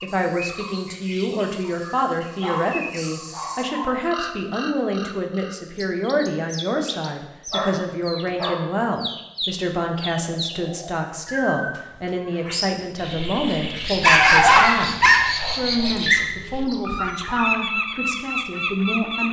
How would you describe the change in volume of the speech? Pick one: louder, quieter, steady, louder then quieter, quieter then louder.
steady.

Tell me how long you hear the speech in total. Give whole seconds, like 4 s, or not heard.
19 s.